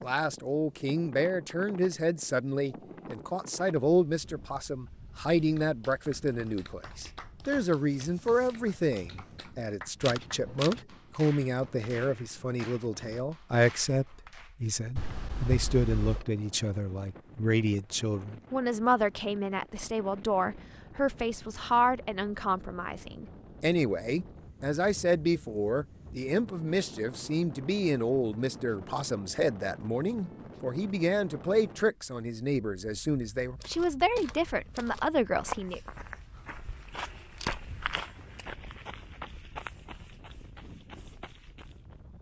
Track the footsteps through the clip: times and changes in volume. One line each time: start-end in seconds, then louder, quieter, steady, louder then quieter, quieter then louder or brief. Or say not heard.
33.2-42.0 louder then quieter.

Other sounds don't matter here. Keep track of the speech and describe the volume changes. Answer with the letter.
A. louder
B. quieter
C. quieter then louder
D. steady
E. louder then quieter
D.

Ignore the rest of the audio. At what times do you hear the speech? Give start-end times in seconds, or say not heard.
0.0-35.8.